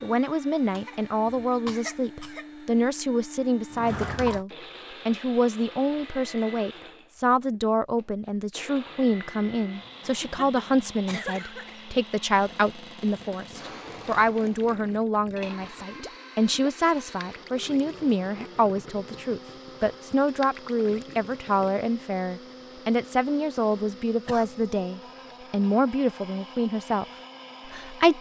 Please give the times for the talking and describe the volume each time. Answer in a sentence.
The talking can be heard from 0.0 to 27.1 s, at a steady volume; and briefly from 27.6 to 28.1 s.